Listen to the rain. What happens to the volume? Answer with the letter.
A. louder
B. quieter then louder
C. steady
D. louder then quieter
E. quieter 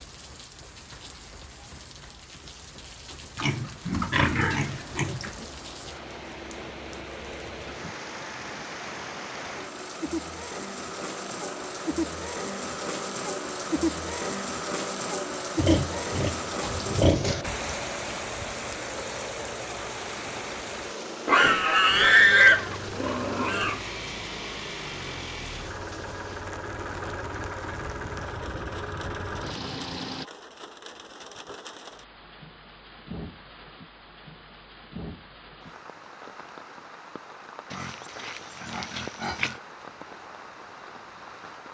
D.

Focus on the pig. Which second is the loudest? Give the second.
22 s.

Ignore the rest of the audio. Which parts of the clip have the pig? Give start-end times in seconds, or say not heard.
3.4-5.3, 15.6-17.4, 21.2-23.8, 37.7-39.5.